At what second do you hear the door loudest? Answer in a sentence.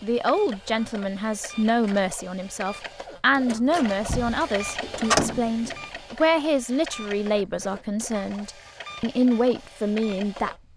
The volume of the door peaks at 5 seconds.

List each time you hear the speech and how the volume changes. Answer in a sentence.
You can hear the speech from 0.0 to 10.6 s, at a steady volume.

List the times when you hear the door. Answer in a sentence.
The door can be heard from 3.5 to 5.8 s.